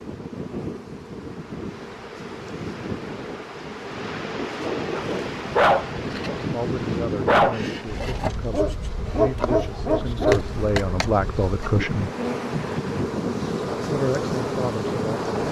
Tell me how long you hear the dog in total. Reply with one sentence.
You can hear the dog for 5 seconds altogether.